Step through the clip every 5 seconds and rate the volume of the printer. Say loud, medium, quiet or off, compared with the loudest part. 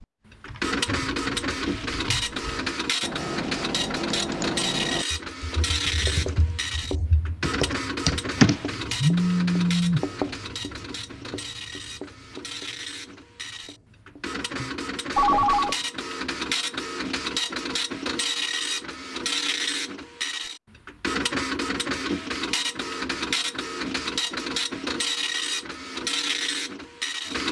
loud, loud, medium, loud, loud, loud.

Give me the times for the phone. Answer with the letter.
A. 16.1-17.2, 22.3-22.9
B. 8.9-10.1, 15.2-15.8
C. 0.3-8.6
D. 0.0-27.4
B.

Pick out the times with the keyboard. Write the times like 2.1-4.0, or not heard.
0.3-8.6.